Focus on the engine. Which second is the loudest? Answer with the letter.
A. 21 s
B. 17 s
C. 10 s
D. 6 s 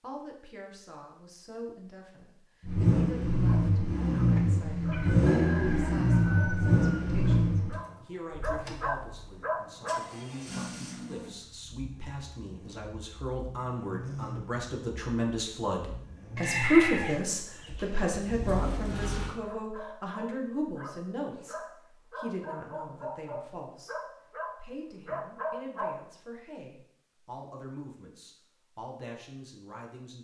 D.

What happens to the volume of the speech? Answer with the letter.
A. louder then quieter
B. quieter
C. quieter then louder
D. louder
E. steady
A.